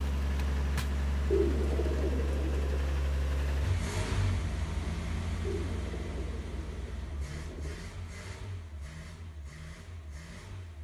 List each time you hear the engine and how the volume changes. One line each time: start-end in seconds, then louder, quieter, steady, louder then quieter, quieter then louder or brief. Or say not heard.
0.0-10.7 quieter.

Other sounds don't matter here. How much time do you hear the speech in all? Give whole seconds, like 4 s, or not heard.
not heard.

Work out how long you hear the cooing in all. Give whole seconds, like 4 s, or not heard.
4 s.